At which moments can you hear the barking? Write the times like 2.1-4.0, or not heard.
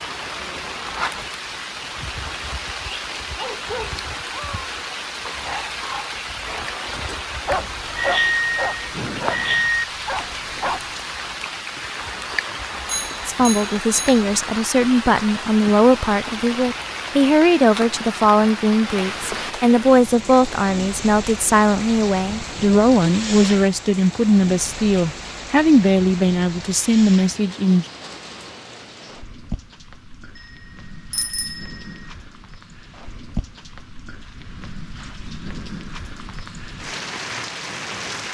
3.4-10.9.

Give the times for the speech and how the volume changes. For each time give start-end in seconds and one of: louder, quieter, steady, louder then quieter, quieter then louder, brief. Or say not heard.
13.2-27.9 steady.